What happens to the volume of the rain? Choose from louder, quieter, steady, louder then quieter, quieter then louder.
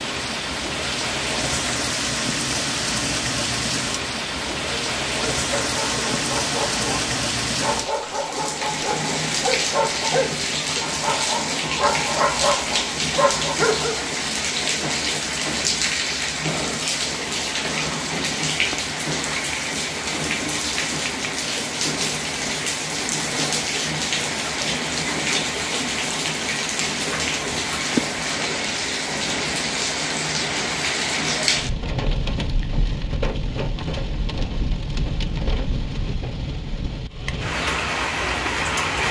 steady.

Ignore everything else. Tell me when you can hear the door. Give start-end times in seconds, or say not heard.
not heard.